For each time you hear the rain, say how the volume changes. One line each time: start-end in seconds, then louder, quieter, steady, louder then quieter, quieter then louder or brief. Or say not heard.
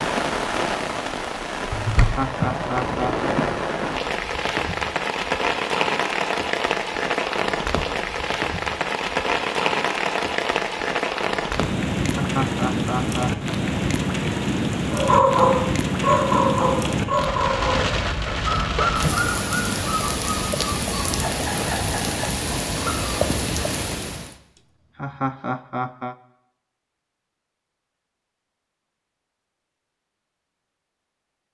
0.0-24.4 steady.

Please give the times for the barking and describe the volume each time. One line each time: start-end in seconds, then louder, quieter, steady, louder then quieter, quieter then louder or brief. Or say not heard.
14.9-23.3 quieter.